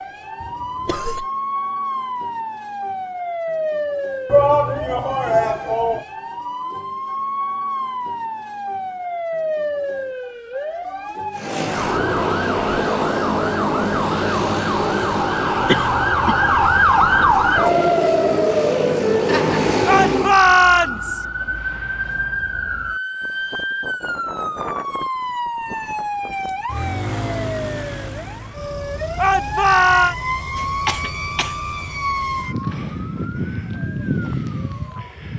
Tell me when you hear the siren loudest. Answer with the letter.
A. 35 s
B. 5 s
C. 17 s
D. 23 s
C.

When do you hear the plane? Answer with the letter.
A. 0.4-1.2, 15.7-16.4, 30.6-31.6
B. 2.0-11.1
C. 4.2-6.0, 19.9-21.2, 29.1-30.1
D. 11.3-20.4
D.